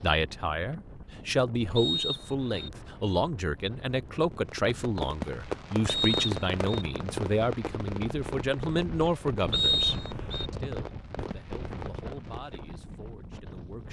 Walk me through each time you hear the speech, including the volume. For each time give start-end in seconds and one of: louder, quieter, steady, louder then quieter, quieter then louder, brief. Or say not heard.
0.0-13.8 quieter.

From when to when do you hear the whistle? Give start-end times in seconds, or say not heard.
1.8-2.7, 5.8-6.8, 9.5-10.5.